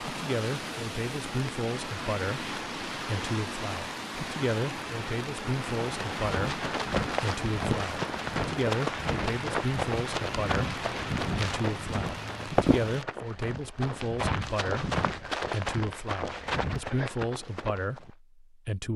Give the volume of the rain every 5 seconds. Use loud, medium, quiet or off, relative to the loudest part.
loud, loud, loud, off.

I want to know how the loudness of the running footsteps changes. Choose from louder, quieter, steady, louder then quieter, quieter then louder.
steady.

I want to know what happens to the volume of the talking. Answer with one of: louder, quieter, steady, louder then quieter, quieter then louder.
steady.